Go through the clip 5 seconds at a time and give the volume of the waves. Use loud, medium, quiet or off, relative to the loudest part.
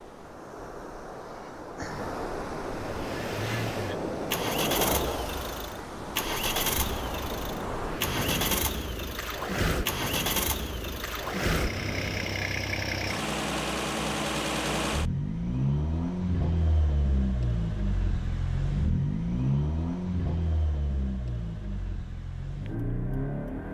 loud, loud, loud, off, off.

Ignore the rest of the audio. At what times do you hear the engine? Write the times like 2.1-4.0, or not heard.
2.7-23.6.